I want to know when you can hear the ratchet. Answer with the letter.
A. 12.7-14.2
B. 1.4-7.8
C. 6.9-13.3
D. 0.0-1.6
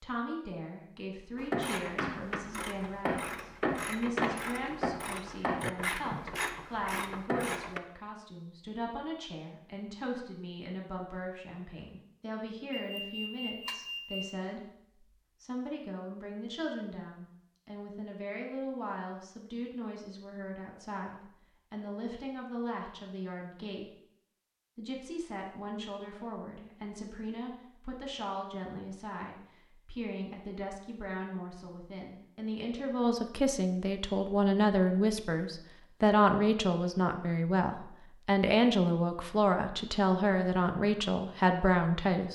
B.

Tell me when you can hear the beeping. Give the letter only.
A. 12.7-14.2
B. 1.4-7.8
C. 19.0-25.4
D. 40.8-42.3
A.